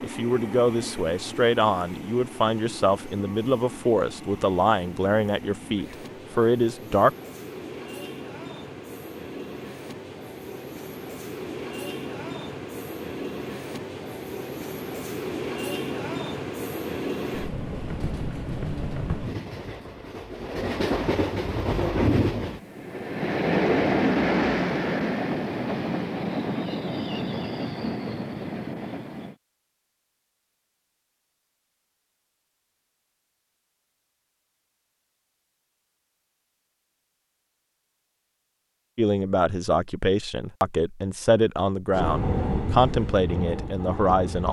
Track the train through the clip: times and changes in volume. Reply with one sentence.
You can hear the train from 0.0 to 29.4 s, getting louder; and briefly from 41.9 to 44.4 s.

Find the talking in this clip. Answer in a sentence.
The talking can be heard from 0.0 to 7.1 s and from 39.0 to 44.4 s.